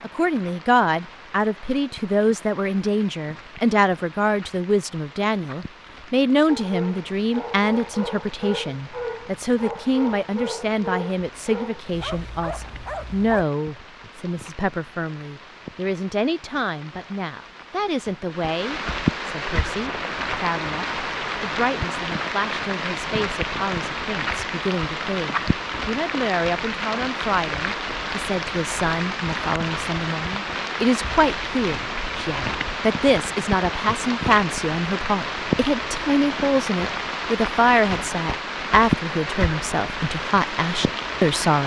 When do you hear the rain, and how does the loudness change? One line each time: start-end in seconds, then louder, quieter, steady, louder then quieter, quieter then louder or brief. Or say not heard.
0.0-41.6 louder.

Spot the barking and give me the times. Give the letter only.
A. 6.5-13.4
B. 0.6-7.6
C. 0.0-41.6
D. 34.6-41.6
A.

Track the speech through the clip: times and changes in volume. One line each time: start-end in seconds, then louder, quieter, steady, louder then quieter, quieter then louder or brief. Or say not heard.
0.0-41.6 quieter then louder.